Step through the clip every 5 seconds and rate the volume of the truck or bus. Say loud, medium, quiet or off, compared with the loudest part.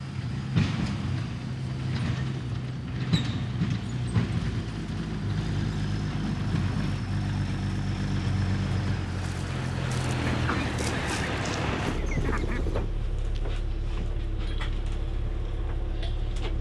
loud, loud, loud, medium.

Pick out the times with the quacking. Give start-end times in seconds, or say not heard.
10.2-12.9.